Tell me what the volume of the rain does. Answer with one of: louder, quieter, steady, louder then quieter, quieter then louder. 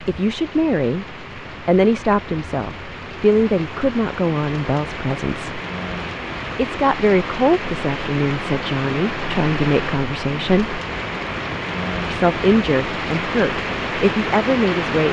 louder.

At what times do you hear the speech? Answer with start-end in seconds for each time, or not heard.
0.0-5.6, 6.5-10.8, 12.1-15.0.